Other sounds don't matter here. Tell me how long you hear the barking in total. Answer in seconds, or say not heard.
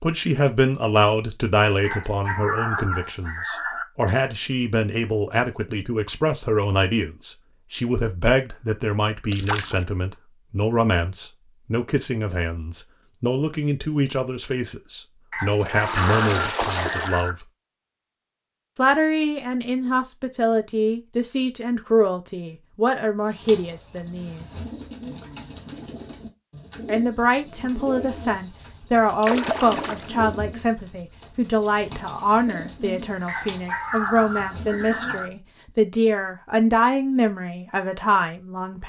6 s.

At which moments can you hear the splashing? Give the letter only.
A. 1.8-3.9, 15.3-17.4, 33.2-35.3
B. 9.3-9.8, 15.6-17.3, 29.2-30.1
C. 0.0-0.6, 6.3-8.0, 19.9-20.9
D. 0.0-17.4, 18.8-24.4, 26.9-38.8
B.